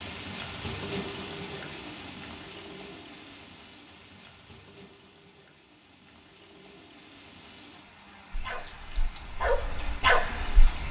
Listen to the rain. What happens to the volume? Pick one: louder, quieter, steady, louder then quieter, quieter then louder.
quieter then louder.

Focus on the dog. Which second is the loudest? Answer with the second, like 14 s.
10 s.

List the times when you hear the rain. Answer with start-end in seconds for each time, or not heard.
0.0-10.8.